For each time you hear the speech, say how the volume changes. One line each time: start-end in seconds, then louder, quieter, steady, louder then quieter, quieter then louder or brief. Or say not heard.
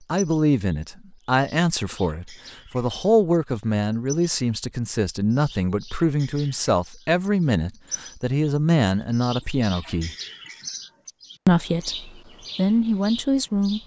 0.1-10.2 steady
11.4-13.8 brief.